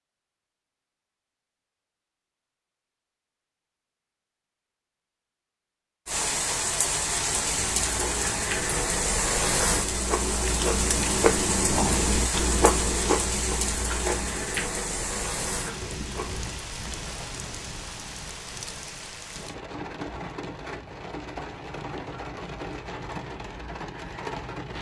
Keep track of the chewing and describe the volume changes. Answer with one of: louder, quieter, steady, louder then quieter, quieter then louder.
louder then quieter.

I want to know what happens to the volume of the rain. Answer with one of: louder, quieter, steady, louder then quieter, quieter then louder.
quieter.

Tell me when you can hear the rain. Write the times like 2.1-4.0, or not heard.
6.0-24.7.